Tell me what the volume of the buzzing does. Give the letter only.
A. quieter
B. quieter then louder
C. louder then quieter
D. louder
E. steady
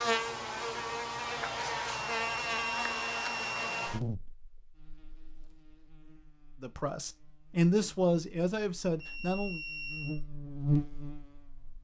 B.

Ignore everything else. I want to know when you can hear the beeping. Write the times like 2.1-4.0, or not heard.
1.9-3.9, 9.0-10.2.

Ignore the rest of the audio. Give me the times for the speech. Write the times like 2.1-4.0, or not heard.
6.6-9.6.